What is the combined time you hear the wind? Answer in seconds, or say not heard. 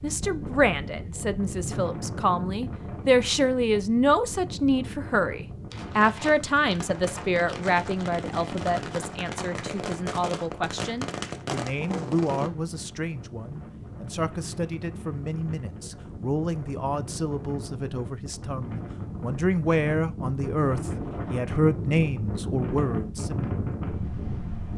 25 s.